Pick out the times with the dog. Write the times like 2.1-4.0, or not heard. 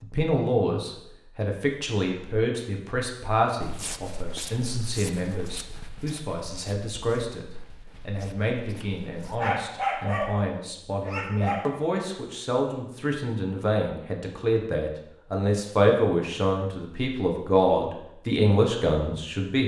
9.3-11.8.